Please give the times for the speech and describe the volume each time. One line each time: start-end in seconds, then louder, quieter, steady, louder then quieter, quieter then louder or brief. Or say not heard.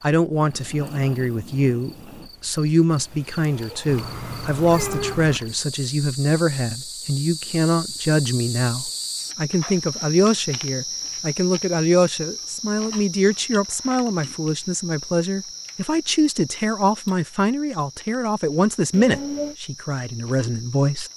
0.0-21.1 steady.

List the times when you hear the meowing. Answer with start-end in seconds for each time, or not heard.
3.9-5.4, 18.9-19.6.